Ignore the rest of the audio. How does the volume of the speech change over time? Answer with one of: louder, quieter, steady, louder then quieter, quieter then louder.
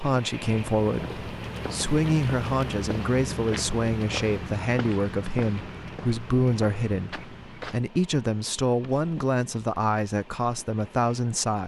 steady.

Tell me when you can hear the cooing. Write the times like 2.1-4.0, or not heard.
not heard.